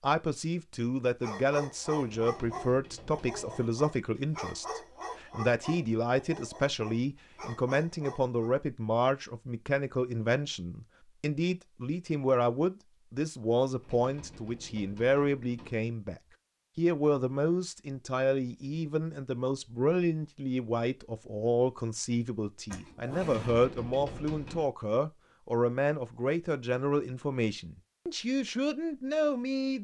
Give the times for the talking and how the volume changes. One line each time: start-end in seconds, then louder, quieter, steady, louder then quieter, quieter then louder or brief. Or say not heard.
0.0-29.8 steady.